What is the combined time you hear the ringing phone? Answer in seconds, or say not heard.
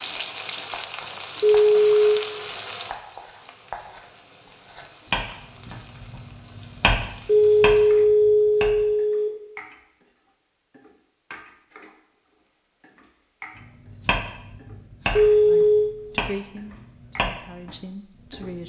4 s.